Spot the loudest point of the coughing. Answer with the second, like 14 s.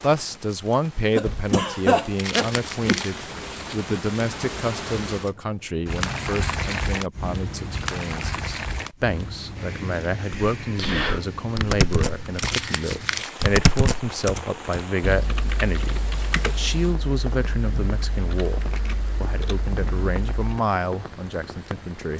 2 s.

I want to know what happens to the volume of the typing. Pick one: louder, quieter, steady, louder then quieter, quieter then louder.
quieter.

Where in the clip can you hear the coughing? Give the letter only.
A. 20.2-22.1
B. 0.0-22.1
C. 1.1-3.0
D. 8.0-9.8
C.